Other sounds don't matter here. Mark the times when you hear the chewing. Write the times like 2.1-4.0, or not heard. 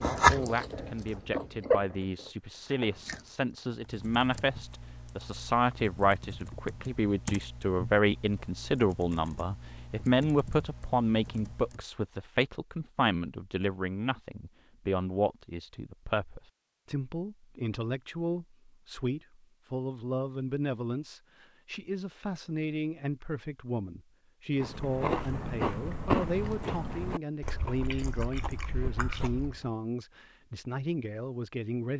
0.0-3.4, 24.6-29.7.